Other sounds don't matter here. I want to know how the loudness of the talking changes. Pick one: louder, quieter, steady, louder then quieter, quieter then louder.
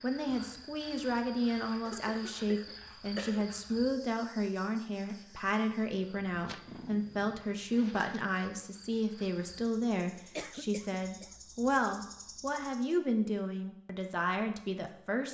steady.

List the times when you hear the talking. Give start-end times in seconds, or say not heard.
0.0-15.2.